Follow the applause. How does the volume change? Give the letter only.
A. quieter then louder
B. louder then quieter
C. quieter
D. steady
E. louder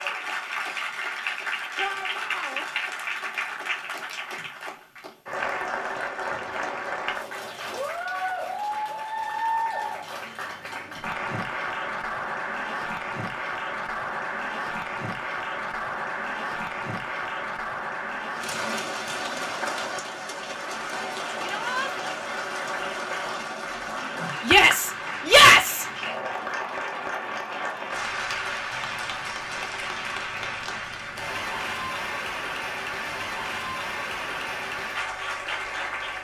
D.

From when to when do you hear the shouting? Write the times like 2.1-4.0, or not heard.
1.8-2.6, 21.4-21.9, 24.4-25.9.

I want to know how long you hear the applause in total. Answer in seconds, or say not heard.
36 s.